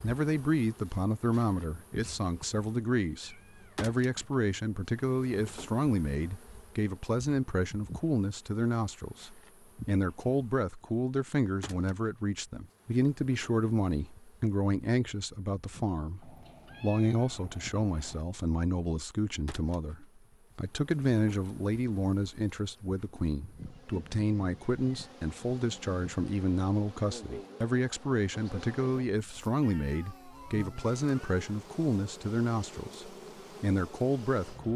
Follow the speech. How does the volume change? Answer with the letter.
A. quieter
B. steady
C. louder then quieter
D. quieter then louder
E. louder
B.